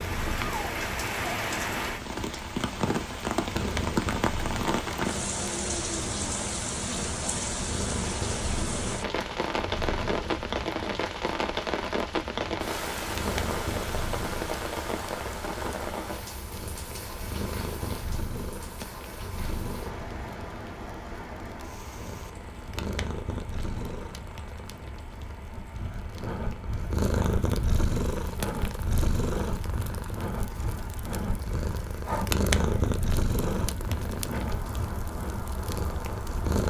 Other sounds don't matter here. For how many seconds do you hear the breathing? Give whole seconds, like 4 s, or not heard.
10 s.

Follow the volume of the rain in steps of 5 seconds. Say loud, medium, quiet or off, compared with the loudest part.
loud, loud, loud, medium, quiet, quiet, quiet, medium.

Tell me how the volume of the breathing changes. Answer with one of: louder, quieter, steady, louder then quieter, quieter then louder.
steady.